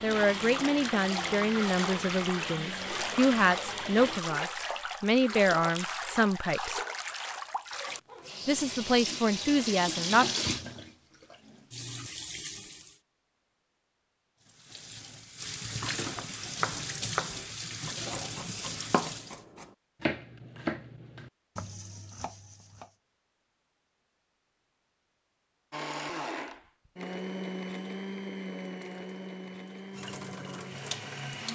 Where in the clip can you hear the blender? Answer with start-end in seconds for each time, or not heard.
0.0-4.2, 25.7-31.4.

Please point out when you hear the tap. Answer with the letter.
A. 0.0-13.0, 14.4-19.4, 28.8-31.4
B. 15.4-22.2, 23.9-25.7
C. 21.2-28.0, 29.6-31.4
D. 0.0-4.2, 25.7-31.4
A.